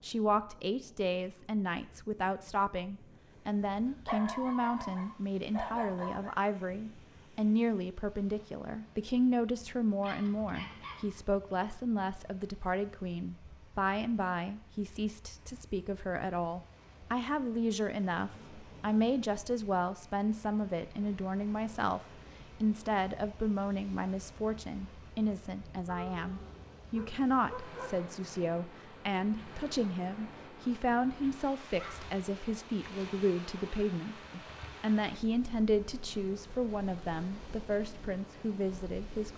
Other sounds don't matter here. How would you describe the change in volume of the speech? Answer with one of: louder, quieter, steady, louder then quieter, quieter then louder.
steady.